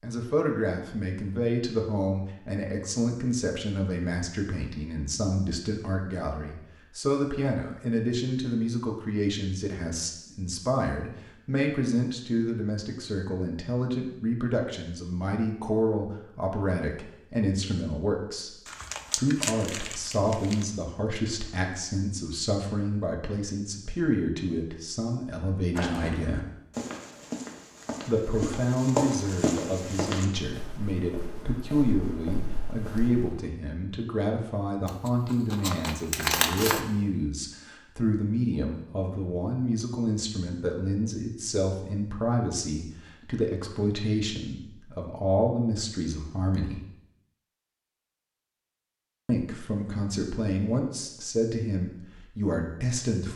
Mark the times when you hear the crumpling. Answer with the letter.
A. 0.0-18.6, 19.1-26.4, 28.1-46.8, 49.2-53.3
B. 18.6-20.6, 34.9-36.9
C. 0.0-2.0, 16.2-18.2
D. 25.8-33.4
B.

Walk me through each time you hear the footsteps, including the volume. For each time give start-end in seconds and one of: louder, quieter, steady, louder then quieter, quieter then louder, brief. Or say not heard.
25.8-33.4 louder then quieter.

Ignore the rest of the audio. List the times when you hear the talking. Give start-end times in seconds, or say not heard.
0.0-18.6, 19.1-26.4, 28.1-46.8, 49.2-53.3.